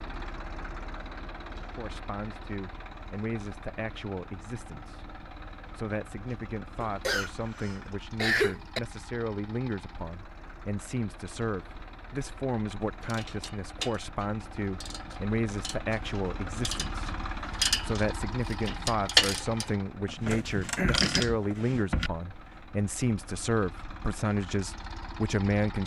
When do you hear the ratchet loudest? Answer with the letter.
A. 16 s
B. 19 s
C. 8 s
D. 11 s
B.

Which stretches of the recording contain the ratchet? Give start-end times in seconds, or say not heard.
13.0-22.1.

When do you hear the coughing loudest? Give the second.
8 s.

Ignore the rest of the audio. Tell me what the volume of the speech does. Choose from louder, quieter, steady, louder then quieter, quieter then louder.
louder.